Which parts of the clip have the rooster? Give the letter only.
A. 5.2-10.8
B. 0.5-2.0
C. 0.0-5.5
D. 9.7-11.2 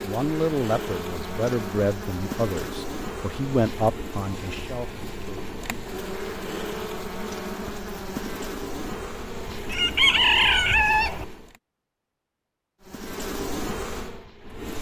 D.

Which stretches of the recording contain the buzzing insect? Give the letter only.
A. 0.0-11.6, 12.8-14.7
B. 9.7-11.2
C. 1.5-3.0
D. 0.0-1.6
A.